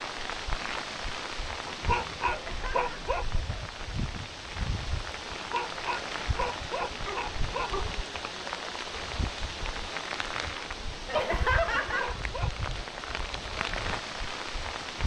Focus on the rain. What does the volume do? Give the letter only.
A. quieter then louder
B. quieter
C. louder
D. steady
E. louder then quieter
D.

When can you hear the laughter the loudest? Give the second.
12 s.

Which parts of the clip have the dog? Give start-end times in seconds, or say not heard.
1.6-3.2, 5.3-7.8, 10.9-12.5.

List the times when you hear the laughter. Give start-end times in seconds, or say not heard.
2.2-3.0, 11.1-12.2.